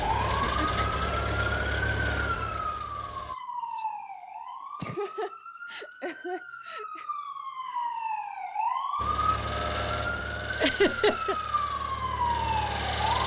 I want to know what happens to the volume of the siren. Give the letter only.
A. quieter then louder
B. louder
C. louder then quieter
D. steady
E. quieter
A.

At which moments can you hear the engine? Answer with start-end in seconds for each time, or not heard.
0.0-3.4, 8.9-13.2.